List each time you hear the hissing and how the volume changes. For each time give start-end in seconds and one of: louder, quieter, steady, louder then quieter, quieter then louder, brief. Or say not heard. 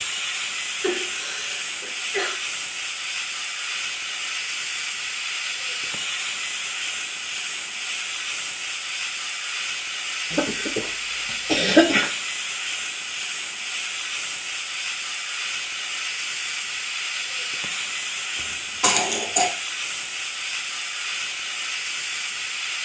0.0-22.7 steady.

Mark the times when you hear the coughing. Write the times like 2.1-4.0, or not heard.
0.8-2.4, 10.3-12.1, 18.8-19.5.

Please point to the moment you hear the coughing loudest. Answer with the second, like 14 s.
12 s.